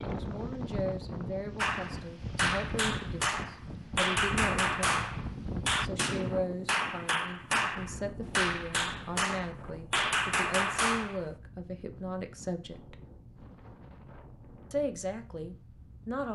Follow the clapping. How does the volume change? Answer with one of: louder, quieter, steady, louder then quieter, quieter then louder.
steady.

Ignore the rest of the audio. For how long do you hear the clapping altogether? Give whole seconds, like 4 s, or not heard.
10 s.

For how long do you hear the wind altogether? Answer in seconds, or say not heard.
16 s.